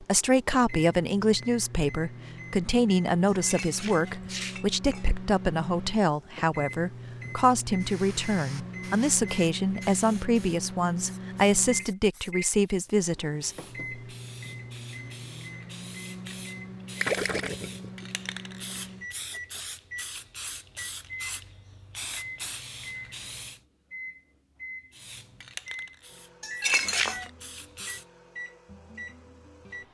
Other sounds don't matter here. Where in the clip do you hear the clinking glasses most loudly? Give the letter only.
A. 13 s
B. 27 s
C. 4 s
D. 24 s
B.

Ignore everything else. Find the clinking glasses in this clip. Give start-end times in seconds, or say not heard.
3.2-5.1, 26.4-27.3.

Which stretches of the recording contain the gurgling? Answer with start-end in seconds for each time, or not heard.
16.9-18.1.